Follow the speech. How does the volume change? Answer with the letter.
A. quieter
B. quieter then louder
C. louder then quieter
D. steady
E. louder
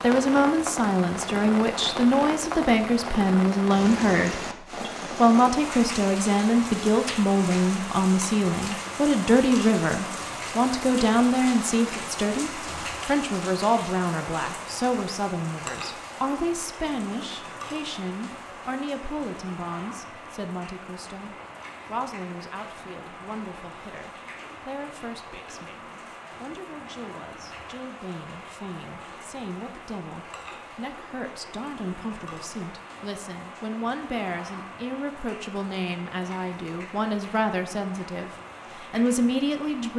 B.